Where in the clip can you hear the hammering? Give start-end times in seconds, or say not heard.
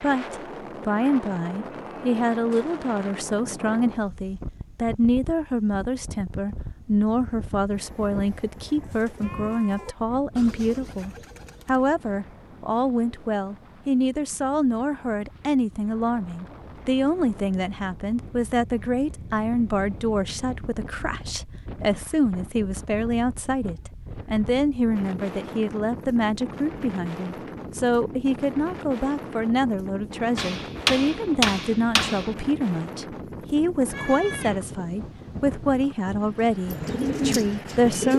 30.4-32.4.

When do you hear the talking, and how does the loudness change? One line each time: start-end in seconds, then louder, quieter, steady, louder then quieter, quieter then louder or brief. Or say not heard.
0.0-38.1 steady.